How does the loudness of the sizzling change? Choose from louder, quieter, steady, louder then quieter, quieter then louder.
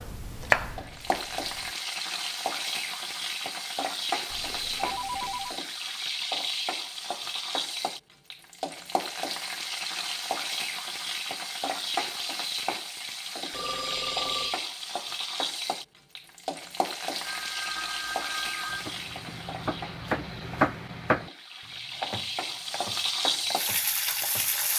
steady.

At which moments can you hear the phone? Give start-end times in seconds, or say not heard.
4.2-5.6, 13.5-14.7, 17.2-18.9.